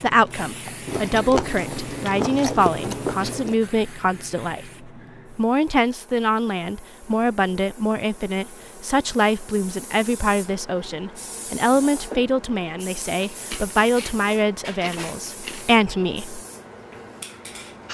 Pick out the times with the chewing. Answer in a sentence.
The chewing can be heard from 0.8 to 3.6 s and from 13.3 to 15.8 s.